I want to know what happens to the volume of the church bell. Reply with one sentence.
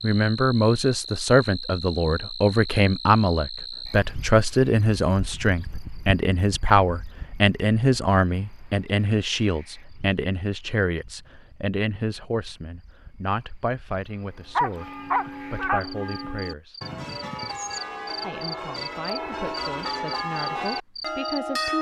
The volume of the church bell goes up.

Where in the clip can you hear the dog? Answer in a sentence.
You can hear the dog from 14.6 to 16.3 s.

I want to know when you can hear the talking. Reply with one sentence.
You can hear the talking from 0.0 to 16.8 s and from 18.2 to 21.7 s.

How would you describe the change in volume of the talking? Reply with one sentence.
The loudness of the talking goes down.